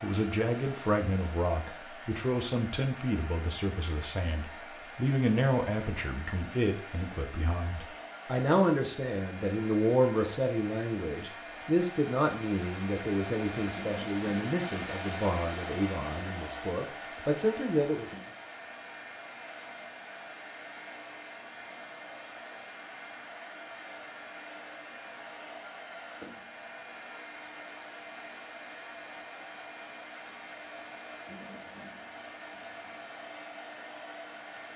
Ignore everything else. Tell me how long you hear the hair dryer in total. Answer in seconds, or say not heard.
35 s.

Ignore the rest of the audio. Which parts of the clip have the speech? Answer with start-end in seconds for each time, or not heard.
0.0-18.1.